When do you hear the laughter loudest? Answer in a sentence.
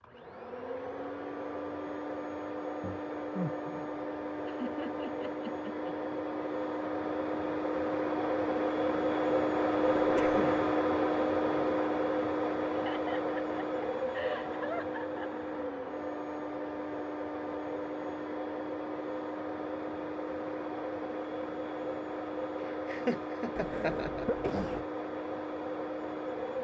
The volume of the laughter peaks at 23 seconds.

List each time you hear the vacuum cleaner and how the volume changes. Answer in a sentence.
You can hear the vacuum cleaner from 0.0 to 26.5 s, getting louder then quieter.